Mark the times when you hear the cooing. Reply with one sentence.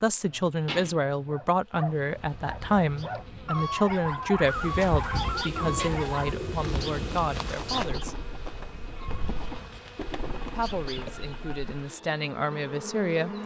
The cooing can be heard from 5.3 to 11.7 s.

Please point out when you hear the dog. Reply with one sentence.
You can hear the dog from 0.3 to 6.3 s.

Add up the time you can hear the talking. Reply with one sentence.
The talking can be heard for 11 seconds in total.